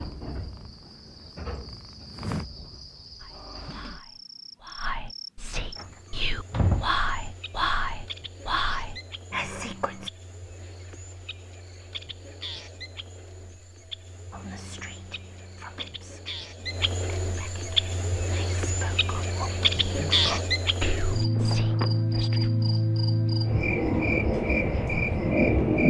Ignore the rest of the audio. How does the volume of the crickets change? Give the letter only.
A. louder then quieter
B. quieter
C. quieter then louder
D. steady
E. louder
E.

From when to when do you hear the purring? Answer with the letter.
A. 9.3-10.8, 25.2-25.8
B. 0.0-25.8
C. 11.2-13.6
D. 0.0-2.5
D.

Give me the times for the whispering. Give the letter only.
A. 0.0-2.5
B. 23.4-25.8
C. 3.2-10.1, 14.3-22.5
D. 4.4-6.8
C.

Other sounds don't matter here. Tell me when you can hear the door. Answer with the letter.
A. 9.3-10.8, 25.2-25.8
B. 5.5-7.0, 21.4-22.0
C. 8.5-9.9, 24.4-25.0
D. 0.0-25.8
B.